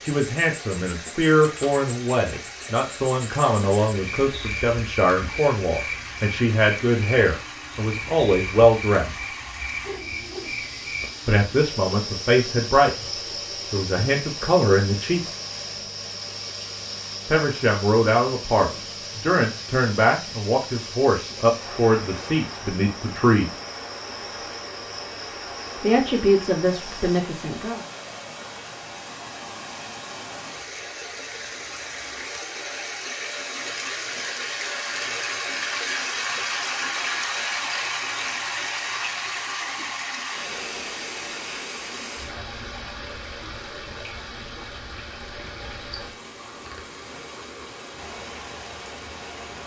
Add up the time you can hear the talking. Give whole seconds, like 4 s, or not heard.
21 s.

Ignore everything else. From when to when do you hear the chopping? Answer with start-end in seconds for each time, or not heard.
not heard.